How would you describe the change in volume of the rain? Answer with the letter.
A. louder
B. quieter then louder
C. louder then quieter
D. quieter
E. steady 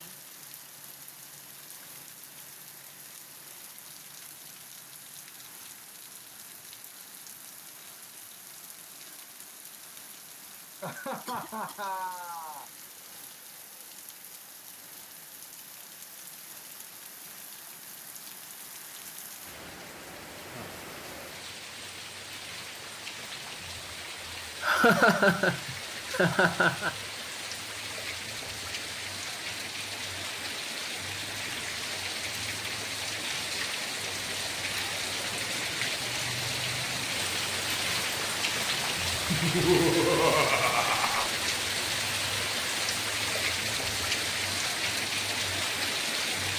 A.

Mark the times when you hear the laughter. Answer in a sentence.
You can hear the laughter from 10.8 to 12.7 s, from 24.6 to 26.9 s and from 39.3 to 41.3 s.